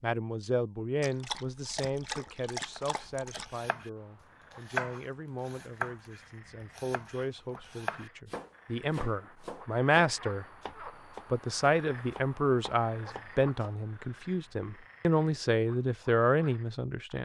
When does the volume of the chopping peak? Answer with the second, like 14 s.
5 s.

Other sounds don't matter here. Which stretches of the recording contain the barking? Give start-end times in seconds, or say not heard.
1.0-3.6.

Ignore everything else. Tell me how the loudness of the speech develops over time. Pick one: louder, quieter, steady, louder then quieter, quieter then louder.
quieter then louder.